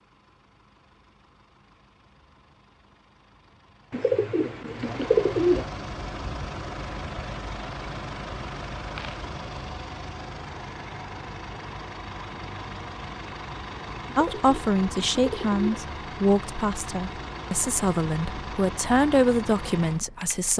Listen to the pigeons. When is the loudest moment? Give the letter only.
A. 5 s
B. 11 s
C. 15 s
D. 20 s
A.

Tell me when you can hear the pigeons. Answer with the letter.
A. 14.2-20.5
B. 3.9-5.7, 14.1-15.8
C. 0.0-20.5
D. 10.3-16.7
B.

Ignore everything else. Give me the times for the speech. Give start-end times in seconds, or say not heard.
14.2-20.5.